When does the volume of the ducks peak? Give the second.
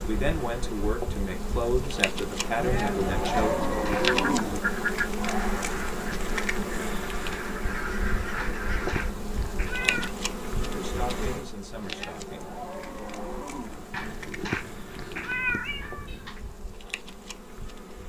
5 s.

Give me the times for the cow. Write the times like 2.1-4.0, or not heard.
2.5-4.6, 11.8-13.8.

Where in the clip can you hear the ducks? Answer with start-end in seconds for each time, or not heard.
4.2-9.2.